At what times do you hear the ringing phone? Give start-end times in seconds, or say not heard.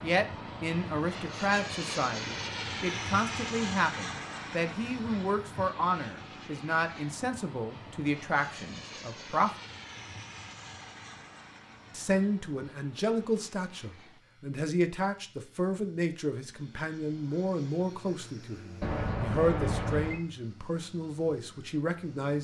18.8-20.2.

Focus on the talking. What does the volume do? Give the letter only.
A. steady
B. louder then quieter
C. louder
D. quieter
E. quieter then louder
A.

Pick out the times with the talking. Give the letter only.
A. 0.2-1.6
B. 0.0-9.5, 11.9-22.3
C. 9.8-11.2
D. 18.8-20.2
B.